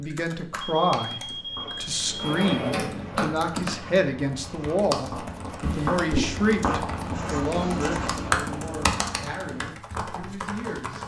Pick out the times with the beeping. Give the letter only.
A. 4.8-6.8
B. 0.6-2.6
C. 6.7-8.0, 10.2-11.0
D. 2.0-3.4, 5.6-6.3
B.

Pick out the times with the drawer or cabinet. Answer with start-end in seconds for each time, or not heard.
2.0-3.4, 5.6-6.3.